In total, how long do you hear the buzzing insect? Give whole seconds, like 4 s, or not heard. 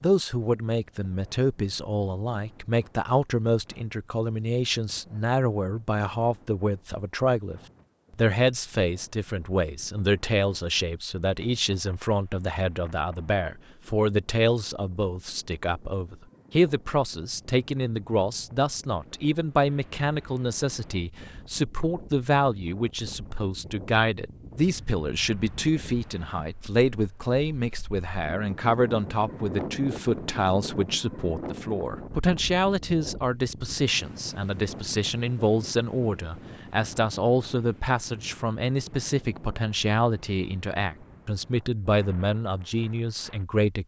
not heard.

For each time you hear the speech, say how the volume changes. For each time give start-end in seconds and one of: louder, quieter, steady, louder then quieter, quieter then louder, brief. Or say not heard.
0.0-43.8 steady.